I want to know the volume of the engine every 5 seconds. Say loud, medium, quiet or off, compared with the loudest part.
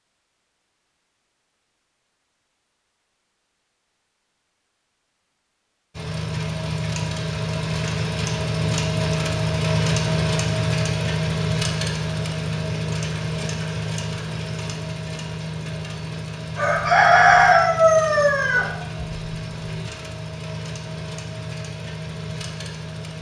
off, loud, loud, medium, medium.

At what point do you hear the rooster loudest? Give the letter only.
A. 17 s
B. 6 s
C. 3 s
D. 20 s
A.